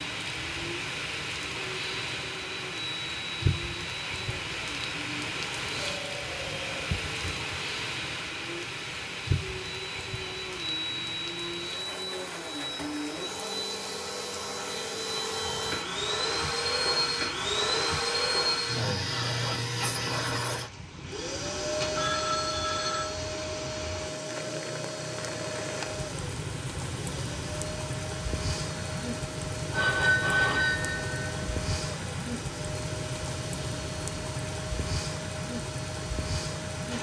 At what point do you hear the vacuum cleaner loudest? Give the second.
18 s.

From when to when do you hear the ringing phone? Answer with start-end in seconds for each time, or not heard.
5.7-7.5, 21.8-23.1, 29.7-31.6.